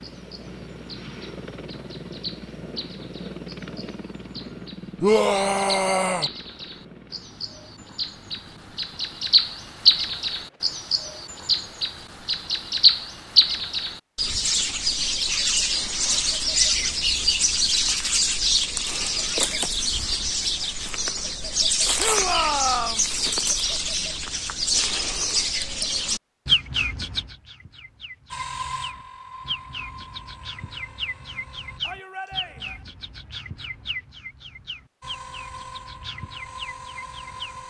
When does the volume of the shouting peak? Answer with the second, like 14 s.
5 s.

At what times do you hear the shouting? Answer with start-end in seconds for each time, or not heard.
5.0-6.3, 21.9-23.1, 31.8-32.9.